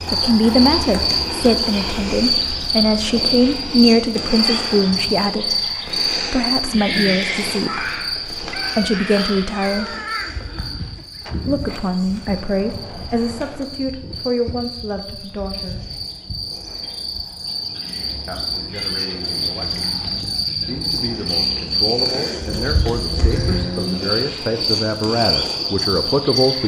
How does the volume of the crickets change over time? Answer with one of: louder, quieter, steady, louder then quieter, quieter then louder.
quieter then louder.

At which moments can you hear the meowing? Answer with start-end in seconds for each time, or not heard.
8.5-11.1, 18.7-20.2.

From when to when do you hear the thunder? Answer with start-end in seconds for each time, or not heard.
not heard.